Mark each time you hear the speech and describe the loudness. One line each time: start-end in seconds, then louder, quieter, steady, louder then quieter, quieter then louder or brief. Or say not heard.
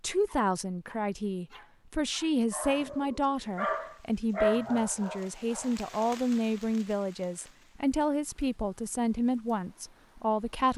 0.0-10.7 steady.